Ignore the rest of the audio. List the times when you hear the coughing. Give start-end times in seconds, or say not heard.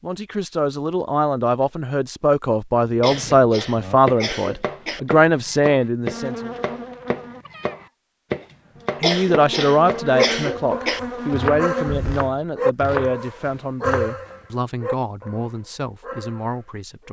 3.0-5.0, 9.0-11.0.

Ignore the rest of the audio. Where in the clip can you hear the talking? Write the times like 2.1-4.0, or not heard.
0.0-6.5, 9.0-17.0.